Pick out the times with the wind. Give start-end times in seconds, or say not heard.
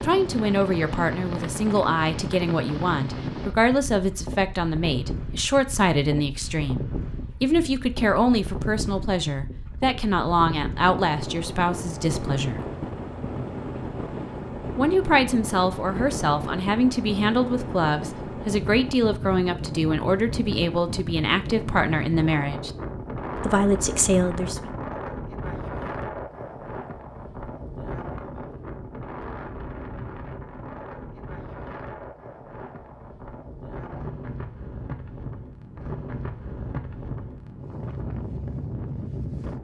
0.0-39.5.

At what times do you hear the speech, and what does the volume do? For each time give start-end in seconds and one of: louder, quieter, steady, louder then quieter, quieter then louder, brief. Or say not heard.
0.0-12.6 steady
14.8-22.7 steady
23.4-24.7 brief.